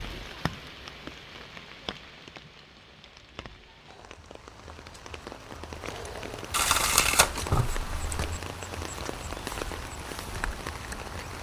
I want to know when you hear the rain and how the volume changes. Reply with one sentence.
The rain can be heard from 0.0 to 11.3 s, getting quieter then louder.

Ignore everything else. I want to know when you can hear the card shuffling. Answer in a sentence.
The card shuffling can be heard from 6.5 to 8.2 s.